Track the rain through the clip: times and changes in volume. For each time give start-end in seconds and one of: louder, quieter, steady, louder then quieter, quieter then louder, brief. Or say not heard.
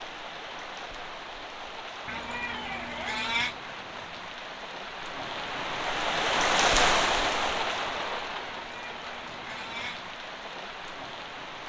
0.0-11.6 louder then quieter.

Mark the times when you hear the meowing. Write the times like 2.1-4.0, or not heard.
2.0-3.5, 8.4-10.2.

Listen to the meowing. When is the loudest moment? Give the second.
3 s.